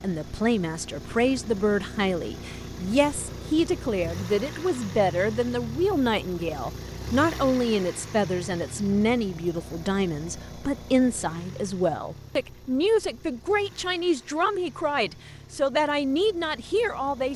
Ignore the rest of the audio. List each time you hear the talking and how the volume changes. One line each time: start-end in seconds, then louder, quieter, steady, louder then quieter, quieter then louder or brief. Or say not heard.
0.0-17.3 steady.